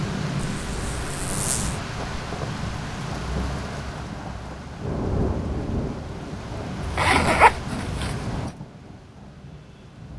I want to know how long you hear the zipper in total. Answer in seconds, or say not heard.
3 s.